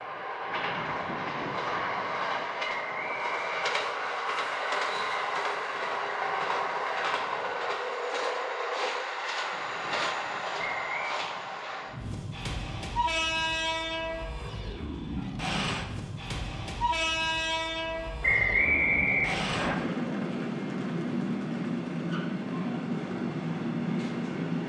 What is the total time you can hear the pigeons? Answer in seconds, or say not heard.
not heard.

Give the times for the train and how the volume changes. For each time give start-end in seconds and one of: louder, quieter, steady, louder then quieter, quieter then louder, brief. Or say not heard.
0.0-24.6 steady.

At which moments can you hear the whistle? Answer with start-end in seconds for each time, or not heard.
2.6-4.2, 10.7-11.2, 18.2-19.8.